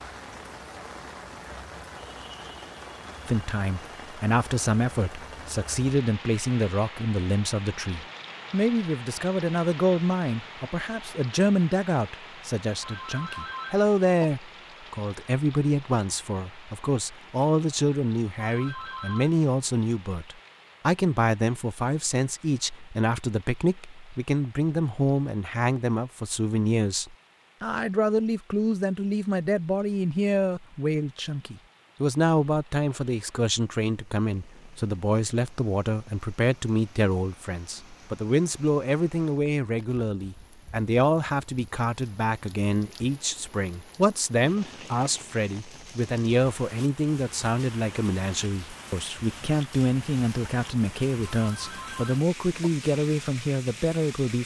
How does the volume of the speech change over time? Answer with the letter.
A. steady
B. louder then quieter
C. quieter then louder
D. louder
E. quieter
A.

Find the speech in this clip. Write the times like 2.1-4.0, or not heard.
3.2-54.4.